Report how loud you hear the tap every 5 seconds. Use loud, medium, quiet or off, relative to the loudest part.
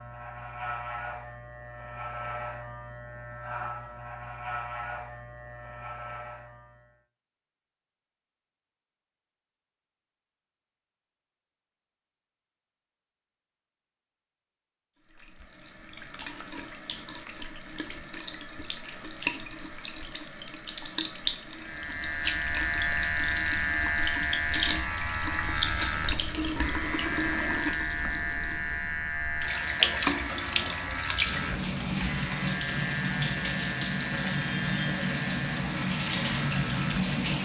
off, off, off, medium, medium, loud, loud, loud.